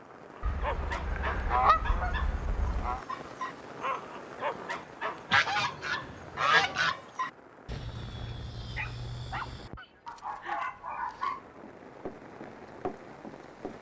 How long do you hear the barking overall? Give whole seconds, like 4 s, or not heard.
11 s.